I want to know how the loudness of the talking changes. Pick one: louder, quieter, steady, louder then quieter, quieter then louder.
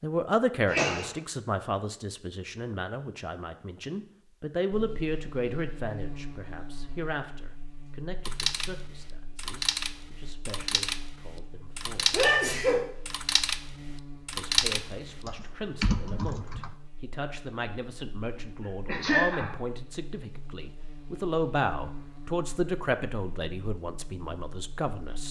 quieter then louder.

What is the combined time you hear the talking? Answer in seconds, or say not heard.
23 s.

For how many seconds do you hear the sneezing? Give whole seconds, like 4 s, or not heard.
2 s.